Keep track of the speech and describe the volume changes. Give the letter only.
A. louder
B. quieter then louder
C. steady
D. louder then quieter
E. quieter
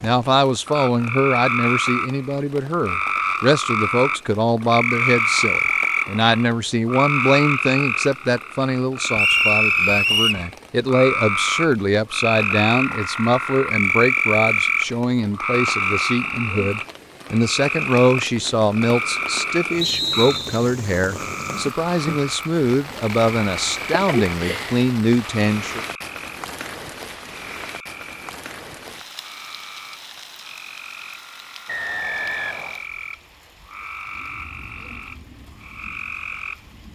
C.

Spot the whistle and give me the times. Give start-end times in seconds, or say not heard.
9.2-10.4, 19.8-20.6, 31.6-32.8.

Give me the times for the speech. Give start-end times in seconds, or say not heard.
0.0-25.8.